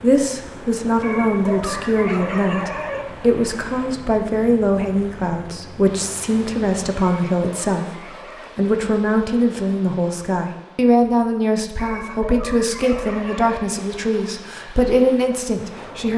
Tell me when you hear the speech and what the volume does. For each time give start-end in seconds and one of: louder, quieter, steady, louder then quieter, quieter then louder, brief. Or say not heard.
0.0-16.1 steady.